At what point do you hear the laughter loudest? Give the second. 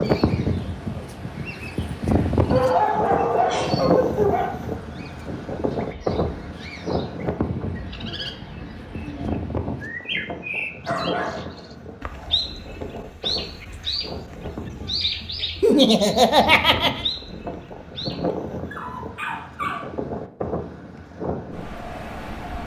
16 s.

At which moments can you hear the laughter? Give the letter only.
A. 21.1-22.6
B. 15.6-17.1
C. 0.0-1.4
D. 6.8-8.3
B.